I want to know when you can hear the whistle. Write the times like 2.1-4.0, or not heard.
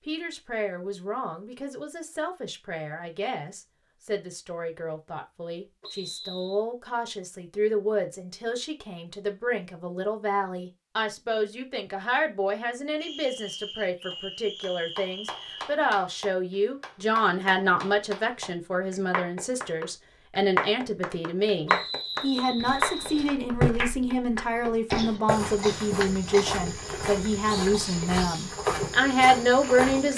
5.8-6.6, 13.0-15.8, 21.6-23.4.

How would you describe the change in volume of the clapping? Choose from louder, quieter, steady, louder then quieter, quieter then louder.
louder.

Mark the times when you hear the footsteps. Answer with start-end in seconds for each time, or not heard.
22.6-30.1.